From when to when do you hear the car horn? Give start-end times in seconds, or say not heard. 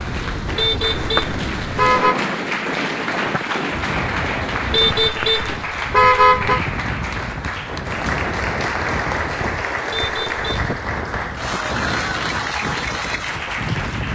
0.6-2.1, 4.7-6.6, 9.9-10.7.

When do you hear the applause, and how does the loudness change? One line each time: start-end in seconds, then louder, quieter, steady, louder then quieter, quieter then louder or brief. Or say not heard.
0.0-14.0 steady.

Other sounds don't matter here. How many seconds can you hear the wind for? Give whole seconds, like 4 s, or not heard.
14 s.